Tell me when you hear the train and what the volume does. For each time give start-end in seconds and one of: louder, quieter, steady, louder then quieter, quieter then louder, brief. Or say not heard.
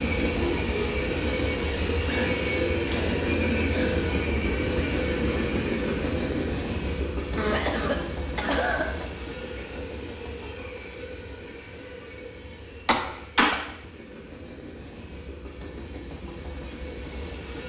0.0-17.6 quieter.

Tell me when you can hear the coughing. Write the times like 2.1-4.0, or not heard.
2.0-4.0, 7.3-9.1, 12.8-13.6.